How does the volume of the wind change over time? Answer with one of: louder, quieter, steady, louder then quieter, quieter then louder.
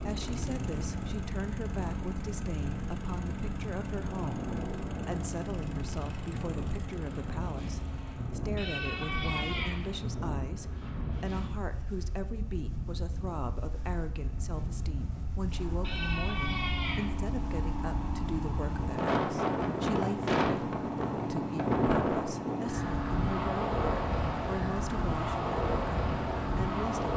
louder.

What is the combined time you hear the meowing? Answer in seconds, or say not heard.
3 s.